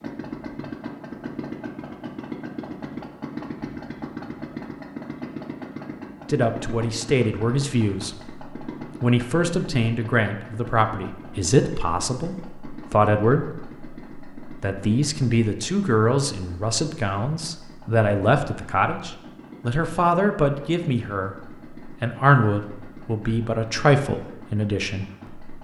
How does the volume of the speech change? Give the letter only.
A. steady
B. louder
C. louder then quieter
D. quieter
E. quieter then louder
A.